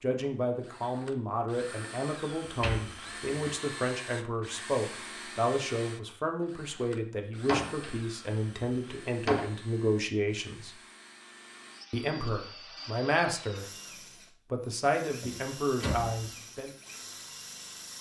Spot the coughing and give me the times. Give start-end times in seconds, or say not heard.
not heard.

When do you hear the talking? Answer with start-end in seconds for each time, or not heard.
0.0-10.8, 11.9-13.7, 14.5-16.7.